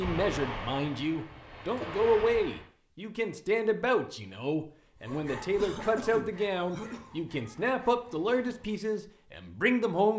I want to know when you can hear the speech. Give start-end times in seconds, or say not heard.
0.0-10.1.